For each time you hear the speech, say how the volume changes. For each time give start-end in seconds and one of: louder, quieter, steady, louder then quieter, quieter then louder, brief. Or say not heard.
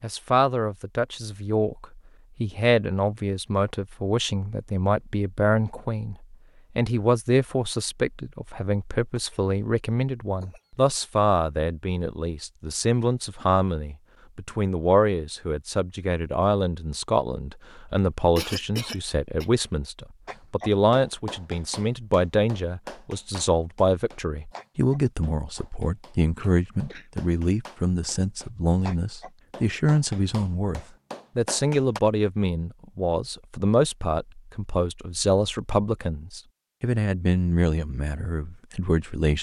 0.0-39.3 steady.